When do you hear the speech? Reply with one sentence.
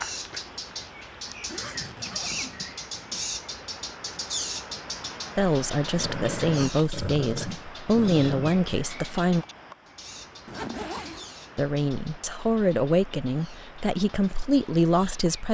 The speech can be heard from 5.3 to 9.4 s and from 11.6 to 15.4 s.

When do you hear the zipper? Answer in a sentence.
The zipper can be heard from 1.2 to 3.2 s and from 10.4 to 11.3 s.